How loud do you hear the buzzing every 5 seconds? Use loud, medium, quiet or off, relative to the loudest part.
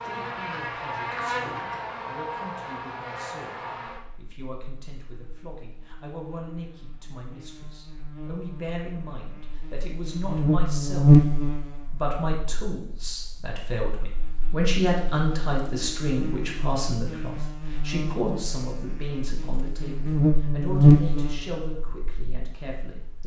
quiet, quiet, loud, quiet, loud.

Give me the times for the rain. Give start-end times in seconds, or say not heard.
not heard.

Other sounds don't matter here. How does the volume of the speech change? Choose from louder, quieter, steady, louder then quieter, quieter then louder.
louder then quieter.